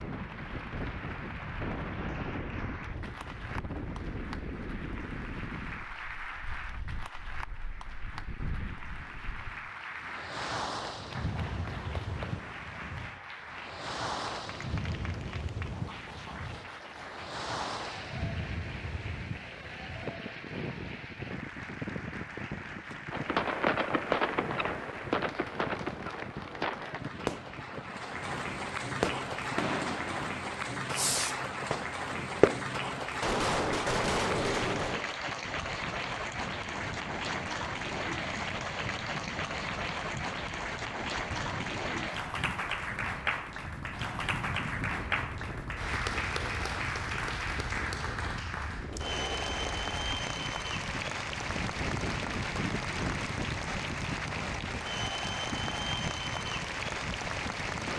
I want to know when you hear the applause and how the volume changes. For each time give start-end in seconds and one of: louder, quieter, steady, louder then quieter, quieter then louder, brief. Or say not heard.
0.0-57.9 louder.